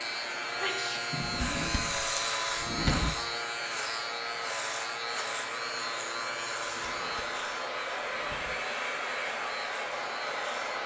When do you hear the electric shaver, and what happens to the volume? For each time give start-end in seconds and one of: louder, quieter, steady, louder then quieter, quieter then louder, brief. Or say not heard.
0.0-10.8 quieter.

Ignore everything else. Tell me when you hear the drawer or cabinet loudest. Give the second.
3 s.